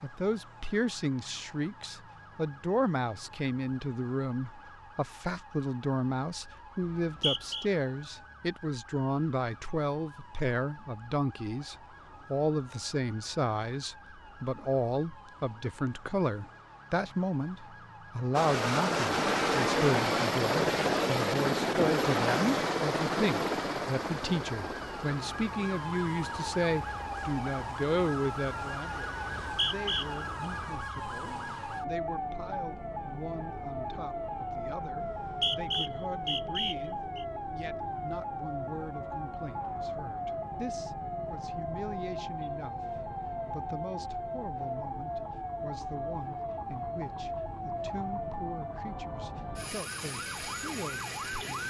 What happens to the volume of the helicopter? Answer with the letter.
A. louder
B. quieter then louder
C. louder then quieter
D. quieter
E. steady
D.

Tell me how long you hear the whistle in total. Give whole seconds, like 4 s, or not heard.
4 s.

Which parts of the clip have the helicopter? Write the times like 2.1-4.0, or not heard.
18.3-30.2.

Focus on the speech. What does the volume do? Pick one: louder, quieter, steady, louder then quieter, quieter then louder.
quieter.